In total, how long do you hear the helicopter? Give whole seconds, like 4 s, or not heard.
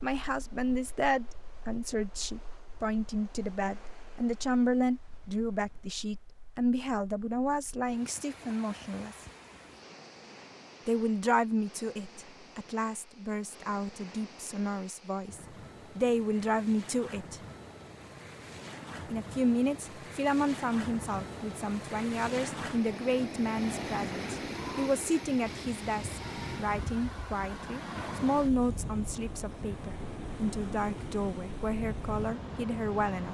not heard.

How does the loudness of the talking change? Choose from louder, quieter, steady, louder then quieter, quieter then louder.
steady.